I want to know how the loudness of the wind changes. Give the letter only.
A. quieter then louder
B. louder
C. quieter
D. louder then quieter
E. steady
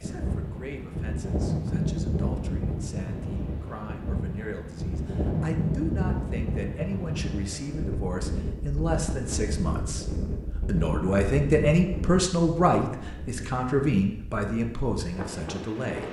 C.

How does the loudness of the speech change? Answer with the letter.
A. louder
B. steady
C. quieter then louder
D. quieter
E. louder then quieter
A.